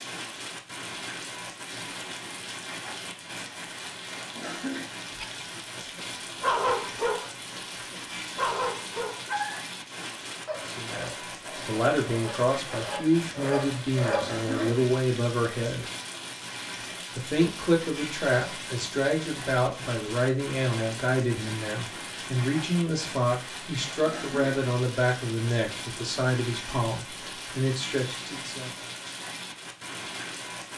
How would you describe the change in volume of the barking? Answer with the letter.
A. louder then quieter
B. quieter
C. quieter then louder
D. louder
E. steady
C.